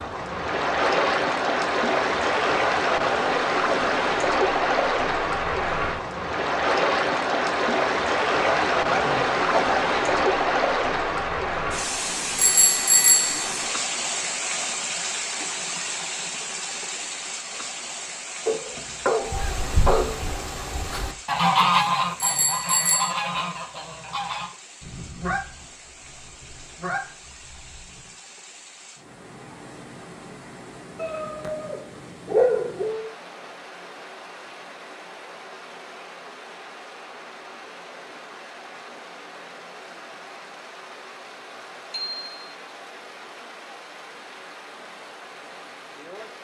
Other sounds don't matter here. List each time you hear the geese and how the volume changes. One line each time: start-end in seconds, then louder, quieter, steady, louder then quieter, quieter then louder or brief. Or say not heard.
19.2-28.1 louder then quieter.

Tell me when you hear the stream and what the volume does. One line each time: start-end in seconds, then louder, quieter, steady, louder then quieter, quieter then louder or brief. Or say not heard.
0.0-46.3 quieter.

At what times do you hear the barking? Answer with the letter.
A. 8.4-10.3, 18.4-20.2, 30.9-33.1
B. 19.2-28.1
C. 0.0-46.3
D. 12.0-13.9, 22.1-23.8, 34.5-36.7
A.